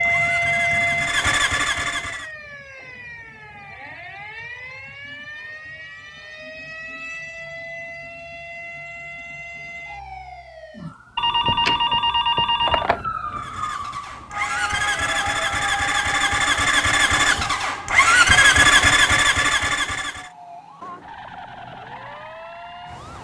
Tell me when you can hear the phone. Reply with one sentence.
You can hear the phone from 11.2 to 13.1 s.